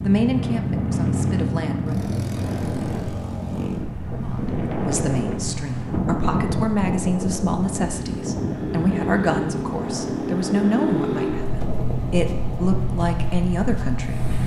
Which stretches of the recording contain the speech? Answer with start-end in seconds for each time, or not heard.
0.0-2.0, 4.2-14.3.